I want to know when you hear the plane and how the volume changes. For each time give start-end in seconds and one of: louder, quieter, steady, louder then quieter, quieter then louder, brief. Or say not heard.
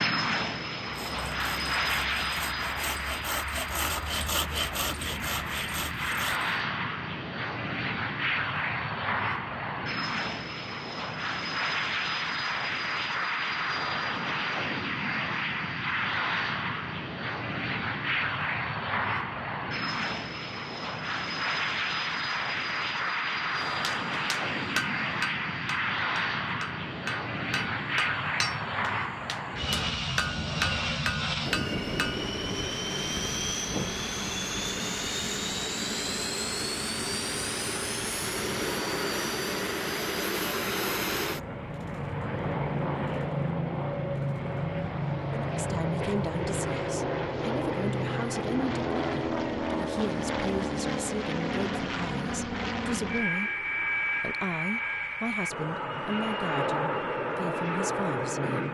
0.0-58.6 steady.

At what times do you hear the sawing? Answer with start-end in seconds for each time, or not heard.
0.8-6.6.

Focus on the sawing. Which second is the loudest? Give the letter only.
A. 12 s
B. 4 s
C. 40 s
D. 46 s
B.